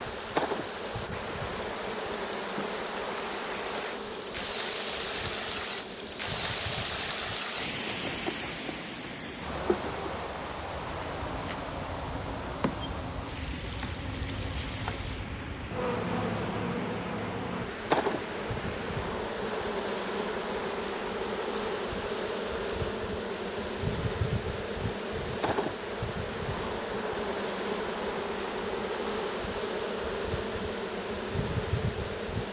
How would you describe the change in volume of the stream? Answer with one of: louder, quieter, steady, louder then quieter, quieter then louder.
quieter.